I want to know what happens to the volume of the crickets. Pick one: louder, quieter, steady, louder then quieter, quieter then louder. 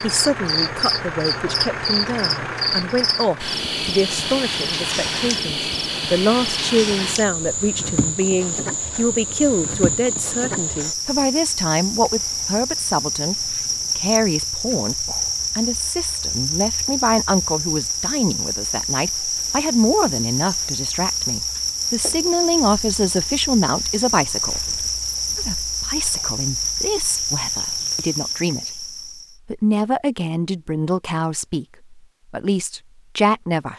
steady.